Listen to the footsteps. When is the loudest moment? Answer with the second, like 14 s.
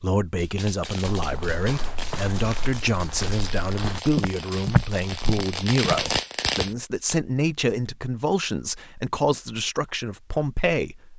5 s.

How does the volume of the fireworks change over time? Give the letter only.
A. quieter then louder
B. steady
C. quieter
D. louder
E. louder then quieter
D.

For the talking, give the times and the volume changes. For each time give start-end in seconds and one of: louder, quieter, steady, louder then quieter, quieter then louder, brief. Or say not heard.
0.0-11.1 steady.